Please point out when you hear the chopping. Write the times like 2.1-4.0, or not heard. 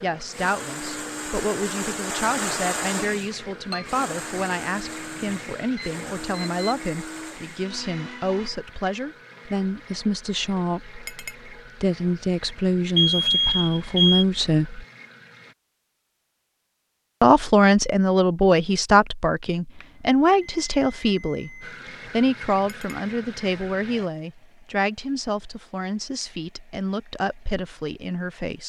not heard.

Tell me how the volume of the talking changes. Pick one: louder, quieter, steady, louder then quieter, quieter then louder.
louder then quieter.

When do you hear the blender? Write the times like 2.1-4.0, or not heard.
0.2-8.5.